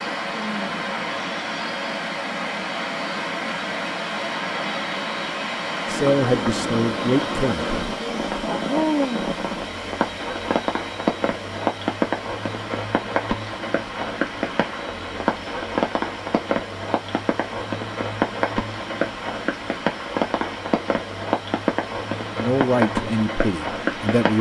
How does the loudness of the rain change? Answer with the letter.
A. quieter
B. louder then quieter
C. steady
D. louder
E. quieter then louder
C.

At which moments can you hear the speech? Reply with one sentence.
You can hear the speech from 5.8 to 7.8 s and from 22.2 to 24.3 s.